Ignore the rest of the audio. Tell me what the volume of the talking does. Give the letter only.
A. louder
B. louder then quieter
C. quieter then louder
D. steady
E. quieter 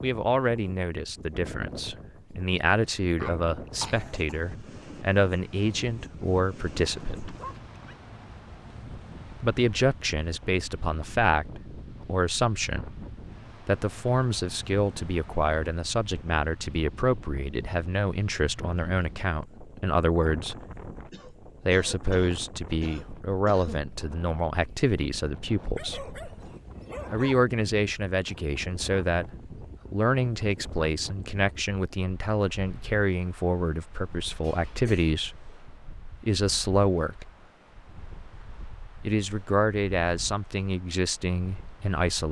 D.